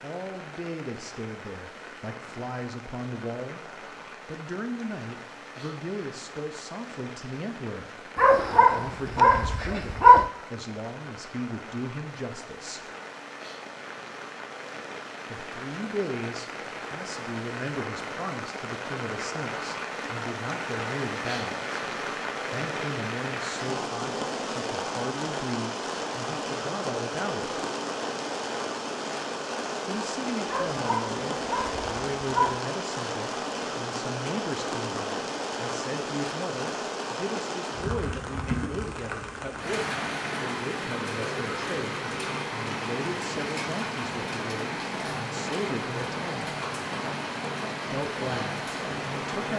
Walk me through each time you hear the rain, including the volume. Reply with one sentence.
The rain can be heard from 0.0 to 49.5 s, getting louder.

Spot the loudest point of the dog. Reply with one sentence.
The volume of the dog peaks at 10 seconds.